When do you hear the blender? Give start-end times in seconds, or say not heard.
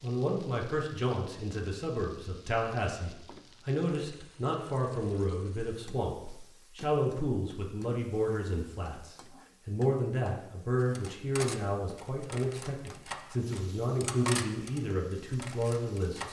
not heard.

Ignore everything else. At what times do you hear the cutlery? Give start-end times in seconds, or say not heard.
10.8-16.2.